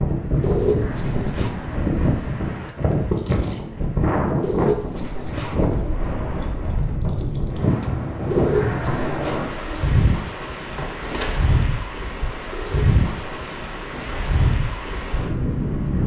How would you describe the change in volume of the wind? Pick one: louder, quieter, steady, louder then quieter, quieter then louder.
steady.